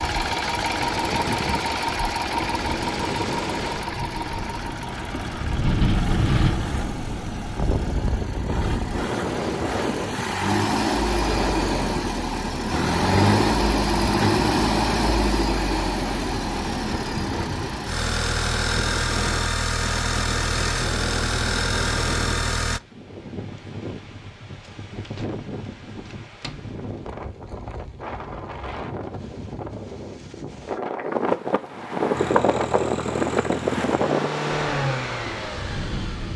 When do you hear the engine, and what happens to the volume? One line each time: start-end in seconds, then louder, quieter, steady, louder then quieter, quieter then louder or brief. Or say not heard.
0.0-22.8 quieter then louder
32.1-36.3 louder then quieter.